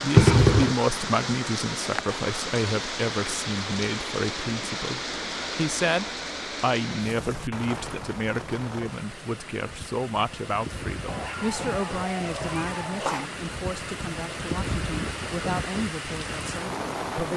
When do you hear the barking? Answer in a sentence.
The barking can be heard from 11.1 to 13.1 s.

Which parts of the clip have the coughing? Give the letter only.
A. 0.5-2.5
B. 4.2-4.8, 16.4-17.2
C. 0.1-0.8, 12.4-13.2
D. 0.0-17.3
C.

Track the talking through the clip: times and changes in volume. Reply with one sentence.
The talking can be heard from 0.0 to 17.3 s, getting quieter.